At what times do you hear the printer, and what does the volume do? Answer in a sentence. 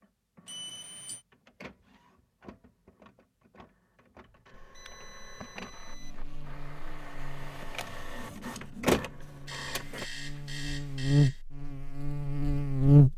The printer can be heard from 0.0 to 10.1 s, getting louder.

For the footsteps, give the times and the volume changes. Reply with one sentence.
You can't hear the footsteps here.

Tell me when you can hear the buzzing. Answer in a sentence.
You can hear the buzzing from 5.8 to 13.1 s.